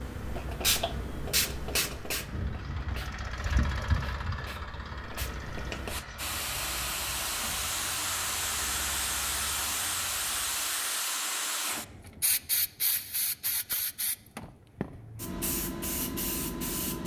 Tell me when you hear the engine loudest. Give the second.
4 s.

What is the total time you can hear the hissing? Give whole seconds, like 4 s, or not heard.
17 s.